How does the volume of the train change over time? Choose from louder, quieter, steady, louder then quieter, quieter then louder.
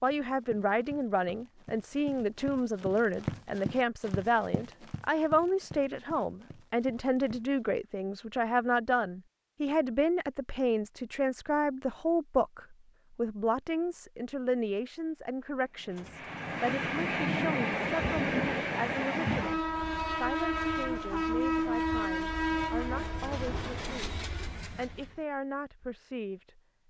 quieter.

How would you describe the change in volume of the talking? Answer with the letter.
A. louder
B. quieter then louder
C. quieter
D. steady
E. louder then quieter
C.